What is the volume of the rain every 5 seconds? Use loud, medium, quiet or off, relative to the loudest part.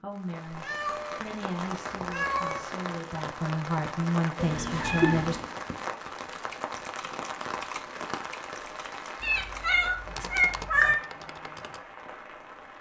loud, loud, medium.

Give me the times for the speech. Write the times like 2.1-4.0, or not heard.
0.0-5.4.